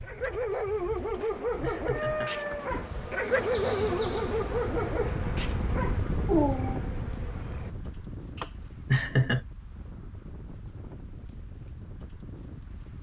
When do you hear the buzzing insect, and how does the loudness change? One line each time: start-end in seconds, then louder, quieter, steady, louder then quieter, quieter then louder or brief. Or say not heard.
1.8-7.8 quieter.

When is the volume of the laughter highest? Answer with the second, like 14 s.
9 s.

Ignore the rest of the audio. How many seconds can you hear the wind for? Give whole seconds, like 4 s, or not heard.
13 s.